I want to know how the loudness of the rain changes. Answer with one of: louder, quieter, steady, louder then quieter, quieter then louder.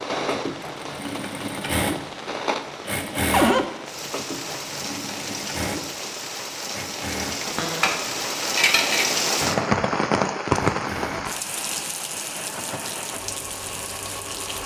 louder then quieter.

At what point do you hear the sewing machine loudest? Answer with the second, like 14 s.
3 s.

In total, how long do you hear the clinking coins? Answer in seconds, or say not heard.
2 s.